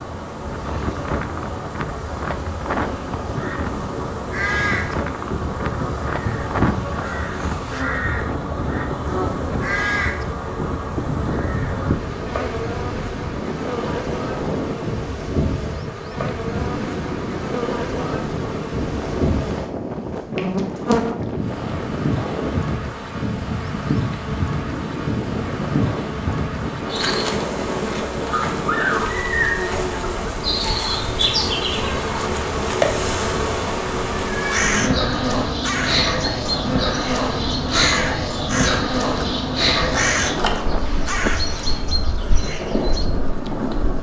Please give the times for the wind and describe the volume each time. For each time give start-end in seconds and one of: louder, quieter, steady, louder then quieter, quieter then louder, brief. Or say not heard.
0.0-43.9 steady.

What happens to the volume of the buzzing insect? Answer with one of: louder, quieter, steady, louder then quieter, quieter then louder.
louder.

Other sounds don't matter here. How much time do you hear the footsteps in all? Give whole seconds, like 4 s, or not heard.
not heard.